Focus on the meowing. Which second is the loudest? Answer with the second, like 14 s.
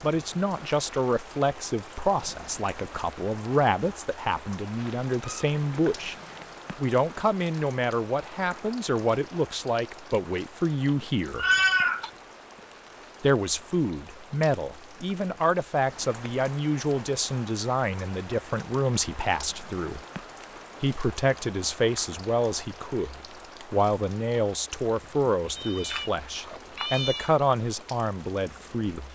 12 s.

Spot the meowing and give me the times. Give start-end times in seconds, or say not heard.
4.8-6.5, 11.0-12.1, 25.6-27.3.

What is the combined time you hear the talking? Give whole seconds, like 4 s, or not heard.
26 s.